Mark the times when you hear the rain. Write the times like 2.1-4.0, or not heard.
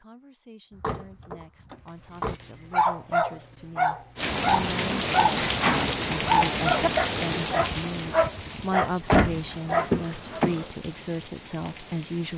4.2-12.3.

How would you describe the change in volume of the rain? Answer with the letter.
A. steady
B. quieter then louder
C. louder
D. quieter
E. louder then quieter
D.